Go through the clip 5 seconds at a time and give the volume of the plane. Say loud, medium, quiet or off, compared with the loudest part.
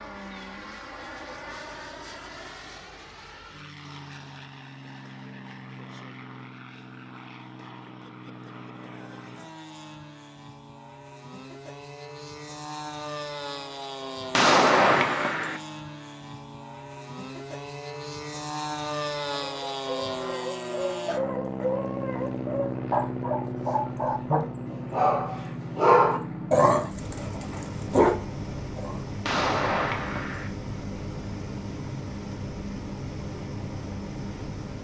medium, medium, medium, loud, loud, loud, loud.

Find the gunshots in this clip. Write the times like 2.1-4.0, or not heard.
14.3-15.6, 29.2-30.5.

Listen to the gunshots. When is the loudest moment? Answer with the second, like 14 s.
15 s.